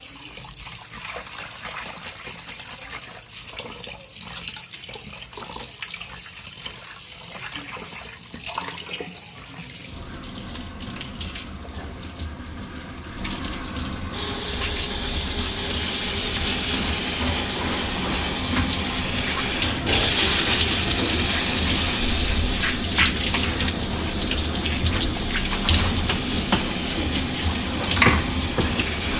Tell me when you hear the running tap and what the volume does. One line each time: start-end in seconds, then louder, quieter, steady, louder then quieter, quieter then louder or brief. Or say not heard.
0.0-29.1 louder.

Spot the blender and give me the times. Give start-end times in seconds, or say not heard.
14.1-29.1.